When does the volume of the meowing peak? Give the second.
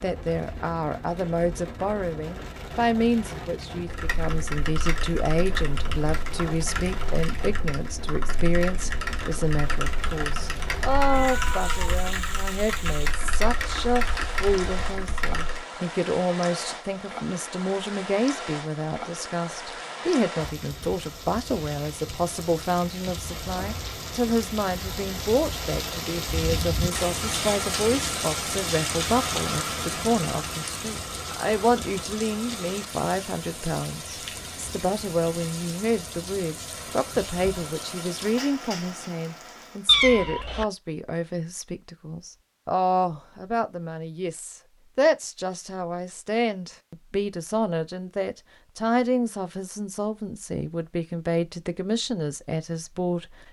40 s.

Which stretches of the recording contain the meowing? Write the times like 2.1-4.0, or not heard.
10.9-12.2, 39.9-40.6.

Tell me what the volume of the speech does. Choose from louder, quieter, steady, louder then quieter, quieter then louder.
steady.